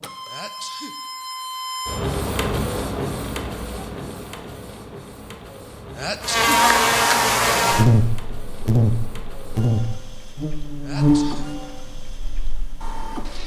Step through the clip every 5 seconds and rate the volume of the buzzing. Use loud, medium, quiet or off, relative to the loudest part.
off, loud, medium.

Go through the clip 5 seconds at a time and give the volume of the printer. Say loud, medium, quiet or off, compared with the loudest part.
loud, medium, medium.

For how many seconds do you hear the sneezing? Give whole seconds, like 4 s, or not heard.
2 s.